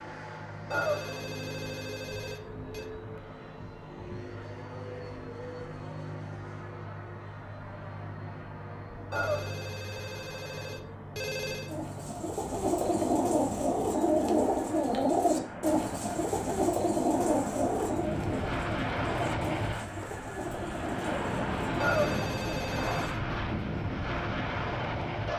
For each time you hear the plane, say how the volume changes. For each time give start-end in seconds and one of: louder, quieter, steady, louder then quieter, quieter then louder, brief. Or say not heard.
0.0-25.3 louder.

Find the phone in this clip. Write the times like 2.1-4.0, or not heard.
0.7-2.9, 9.1-11.7, 21.8-23.2.